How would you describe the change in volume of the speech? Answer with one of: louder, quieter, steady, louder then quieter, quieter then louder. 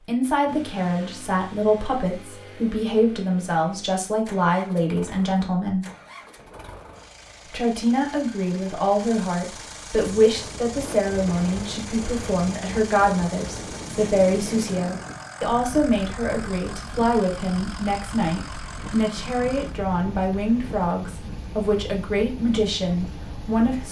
steady.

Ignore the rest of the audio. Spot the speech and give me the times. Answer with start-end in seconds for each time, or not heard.
0.1-5.8, 7.5-23.8.